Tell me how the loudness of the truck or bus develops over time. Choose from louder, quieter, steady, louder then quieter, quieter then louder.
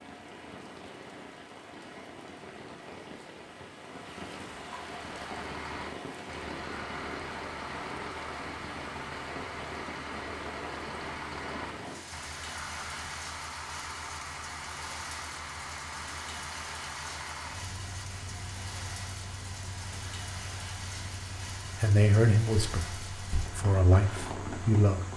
quieter.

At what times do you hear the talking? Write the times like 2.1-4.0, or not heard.
21.8-25.0.